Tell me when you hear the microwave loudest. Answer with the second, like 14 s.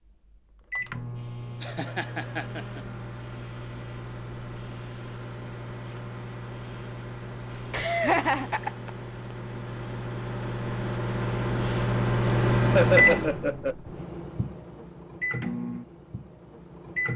13 s.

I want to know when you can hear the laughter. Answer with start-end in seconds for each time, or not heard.
1.6-2.8, 7.7-8.9, 12.7-13.8.